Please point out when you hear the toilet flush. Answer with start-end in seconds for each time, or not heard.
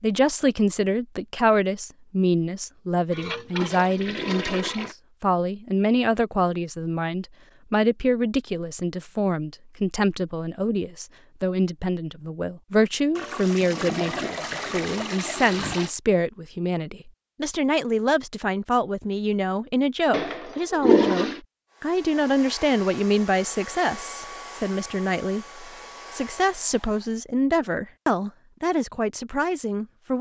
3.1-5.0, 13.2-15.9, 20.1-21.4.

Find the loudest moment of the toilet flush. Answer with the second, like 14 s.
21 s.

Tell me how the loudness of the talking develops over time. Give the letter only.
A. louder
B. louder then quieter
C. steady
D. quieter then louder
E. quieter
C.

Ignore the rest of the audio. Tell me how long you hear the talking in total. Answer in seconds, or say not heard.
30 s.